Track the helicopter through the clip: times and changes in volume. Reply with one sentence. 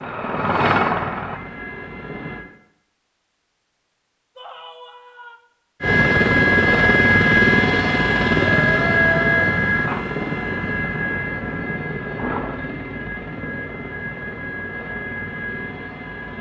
The helicopter can be heard briefly from 0.0 to 2.5 s; and from 5.8 to 16.3 s, getting quieter.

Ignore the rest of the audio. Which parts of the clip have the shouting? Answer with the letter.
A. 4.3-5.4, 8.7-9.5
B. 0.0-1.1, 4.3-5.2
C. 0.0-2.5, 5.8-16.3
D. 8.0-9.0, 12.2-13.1
A.